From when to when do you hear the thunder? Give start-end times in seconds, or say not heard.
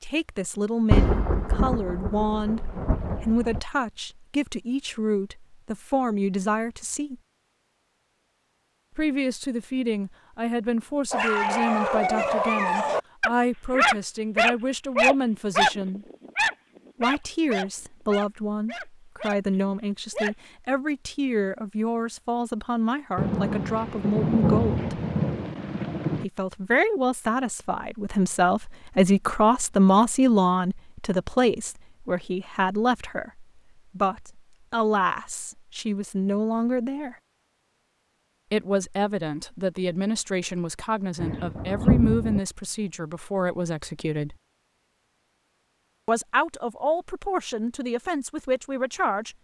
0.9-3.6, 23.1-26.2, 41.1-42.4.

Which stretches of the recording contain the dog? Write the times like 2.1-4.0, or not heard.
11.1-20.4.